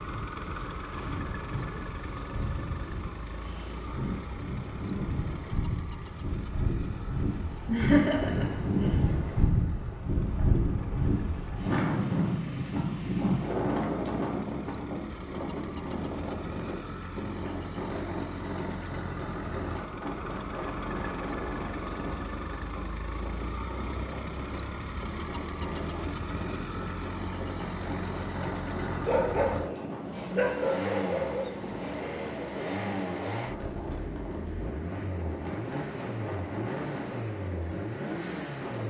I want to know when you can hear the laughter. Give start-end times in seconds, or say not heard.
7.7-8.9.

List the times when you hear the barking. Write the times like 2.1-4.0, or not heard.
29.1-31.4.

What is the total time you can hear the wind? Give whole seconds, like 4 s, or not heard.
39 s.